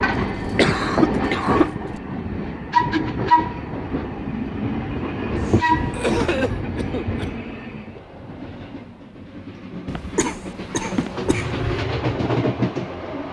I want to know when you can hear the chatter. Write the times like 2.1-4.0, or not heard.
not heard.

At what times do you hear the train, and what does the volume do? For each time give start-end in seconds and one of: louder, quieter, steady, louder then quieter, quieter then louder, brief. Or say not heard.
0.0-13.2 quieter then louder.